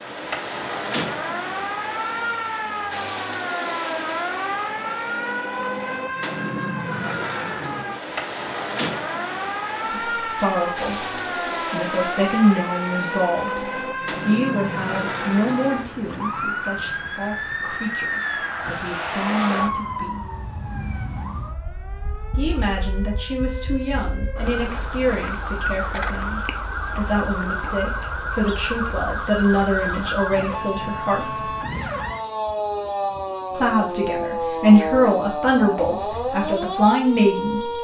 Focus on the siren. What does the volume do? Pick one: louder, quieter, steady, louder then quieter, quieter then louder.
steady.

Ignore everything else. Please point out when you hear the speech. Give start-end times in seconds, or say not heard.
9.9-11.1, 11.7-20.2, 22.4-31.5, 33.5-37.7.